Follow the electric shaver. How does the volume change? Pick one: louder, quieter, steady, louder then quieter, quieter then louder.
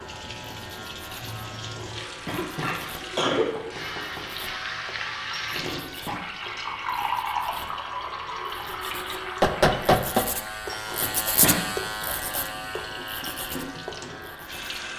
louder.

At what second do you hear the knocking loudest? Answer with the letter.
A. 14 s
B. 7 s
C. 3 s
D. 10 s
D.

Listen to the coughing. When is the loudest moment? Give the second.
3 s.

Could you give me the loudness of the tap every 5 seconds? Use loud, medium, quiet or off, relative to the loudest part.
medium, loud, medium.